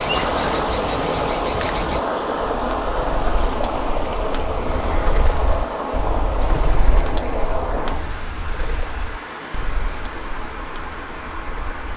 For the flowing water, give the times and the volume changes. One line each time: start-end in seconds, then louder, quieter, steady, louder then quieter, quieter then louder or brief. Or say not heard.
0.0-11.9 quieter.